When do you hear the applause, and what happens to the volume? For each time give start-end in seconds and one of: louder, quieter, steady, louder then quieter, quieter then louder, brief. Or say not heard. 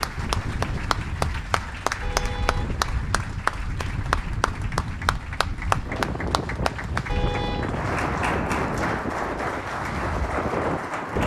0.0-11.2 steady.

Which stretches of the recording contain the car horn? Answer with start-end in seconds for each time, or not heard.
2.0-3.1, 7.0-7.8.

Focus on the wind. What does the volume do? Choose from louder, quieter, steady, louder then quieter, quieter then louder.
louder.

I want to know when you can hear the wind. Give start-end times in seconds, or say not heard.
0.0-11.2.